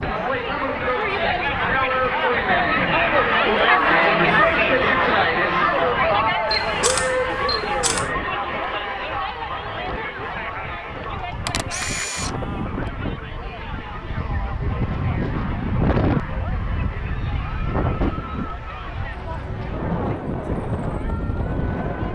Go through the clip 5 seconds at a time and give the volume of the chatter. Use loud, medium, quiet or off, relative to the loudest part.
loud, loud, quiet, quiet, quiet.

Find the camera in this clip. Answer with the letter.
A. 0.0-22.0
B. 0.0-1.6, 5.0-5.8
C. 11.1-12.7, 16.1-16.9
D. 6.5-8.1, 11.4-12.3
D.